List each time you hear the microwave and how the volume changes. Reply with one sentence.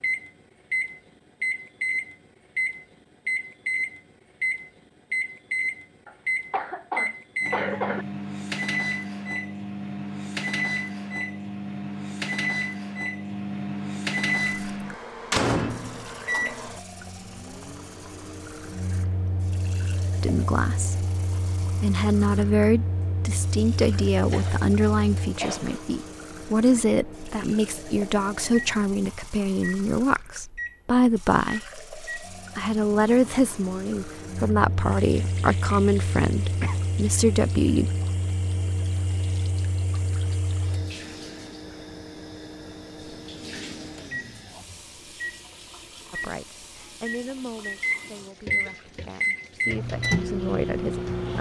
The microwave can be heard from 0.0 to 51.3 s, getting quieter then louder.